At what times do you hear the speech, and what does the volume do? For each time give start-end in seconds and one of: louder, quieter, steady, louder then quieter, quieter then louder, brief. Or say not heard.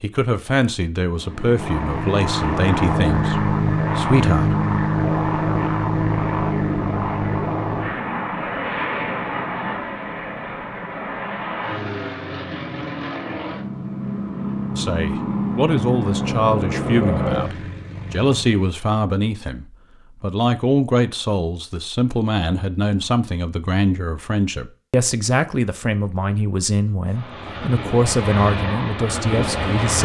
0.0-4.5 steady
14.8-30.0 steady.